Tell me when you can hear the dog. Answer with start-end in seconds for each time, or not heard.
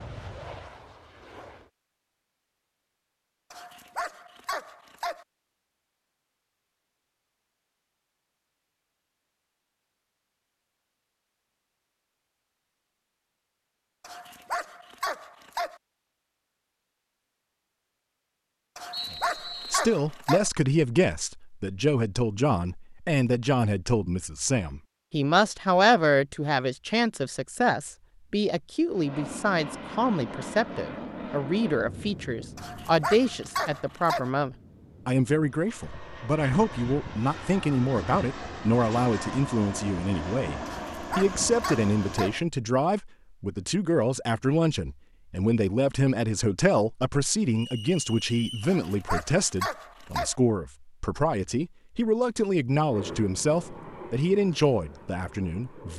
3.5-5.2, 14.0-15.8, 18.8-20.5, 32.5-34.3, 40.6-42.4, 48.6-50.4.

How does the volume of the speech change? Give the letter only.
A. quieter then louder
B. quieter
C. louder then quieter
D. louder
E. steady
E.